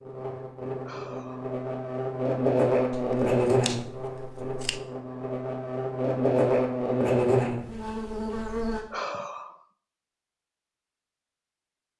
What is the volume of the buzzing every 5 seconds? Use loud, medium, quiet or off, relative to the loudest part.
loud, loud, off.